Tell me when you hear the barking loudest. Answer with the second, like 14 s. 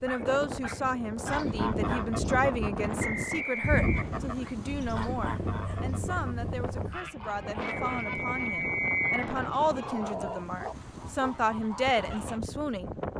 10 s.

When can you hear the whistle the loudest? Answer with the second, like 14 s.
9 s.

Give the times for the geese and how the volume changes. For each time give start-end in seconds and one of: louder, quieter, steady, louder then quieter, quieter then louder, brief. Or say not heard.
1.2-12.4 quieter.